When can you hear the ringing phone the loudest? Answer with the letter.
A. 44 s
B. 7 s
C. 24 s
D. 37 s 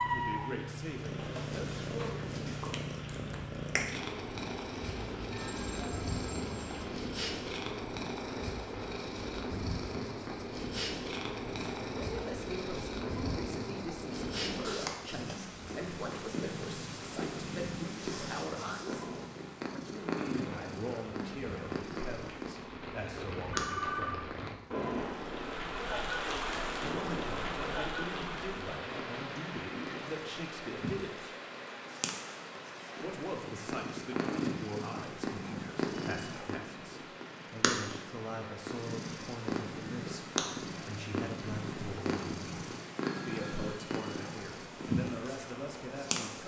C.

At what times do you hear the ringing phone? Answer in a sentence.
The ringing phone can be heard from 5.0 to 7.0 s, from 23.5 to 24.2 s and from 43.0 to 43.8 s.